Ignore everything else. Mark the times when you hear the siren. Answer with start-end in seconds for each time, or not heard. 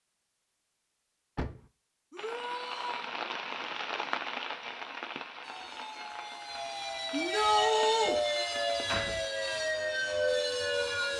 5.4-11.1.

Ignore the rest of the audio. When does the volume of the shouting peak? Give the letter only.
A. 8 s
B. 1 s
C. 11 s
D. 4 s
A.